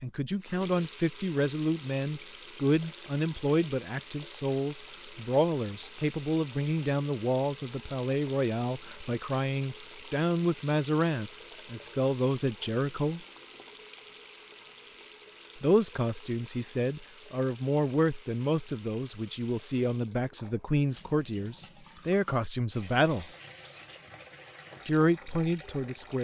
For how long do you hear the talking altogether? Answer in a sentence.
You can hear the talking for 22 seconds altogether.